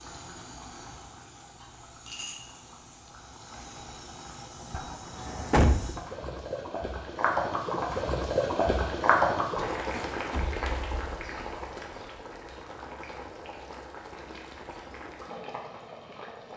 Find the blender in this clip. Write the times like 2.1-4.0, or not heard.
not heard.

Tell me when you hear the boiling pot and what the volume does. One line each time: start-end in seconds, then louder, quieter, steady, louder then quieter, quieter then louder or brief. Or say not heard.
0.0-16.5 louder then quieter.